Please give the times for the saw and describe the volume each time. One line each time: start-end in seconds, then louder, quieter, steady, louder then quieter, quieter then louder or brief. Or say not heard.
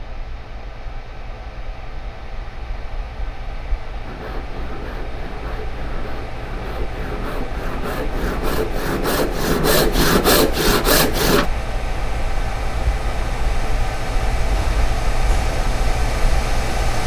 4.0-11.5 louder.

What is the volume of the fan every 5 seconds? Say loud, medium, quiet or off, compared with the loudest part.
quiet, medium, loud, loud.